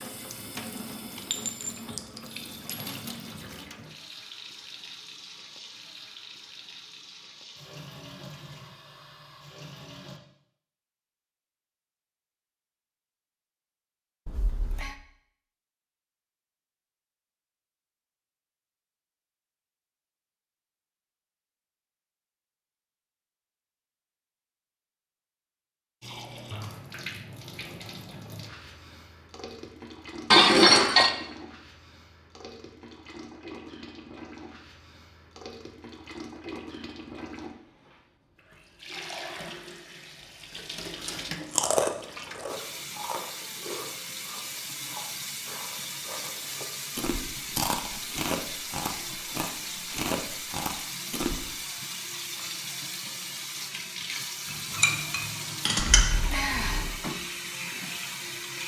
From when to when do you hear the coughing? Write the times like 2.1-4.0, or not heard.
not heard.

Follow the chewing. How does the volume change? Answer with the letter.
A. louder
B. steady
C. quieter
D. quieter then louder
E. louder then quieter
D.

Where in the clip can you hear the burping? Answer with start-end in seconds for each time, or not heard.
14.2-14.9, 56.0-57.0.